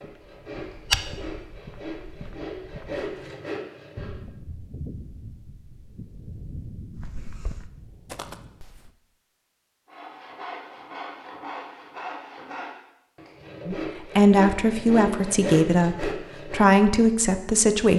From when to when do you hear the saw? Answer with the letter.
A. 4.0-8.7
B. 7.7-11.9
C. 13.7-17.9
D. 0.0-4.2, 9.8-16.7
D.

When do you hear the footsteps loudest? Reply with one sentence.
The volume of the footsteps peaks at 1 second.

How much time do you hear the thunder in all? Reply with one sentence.
You can hear the thunder for 5 seconds altogether.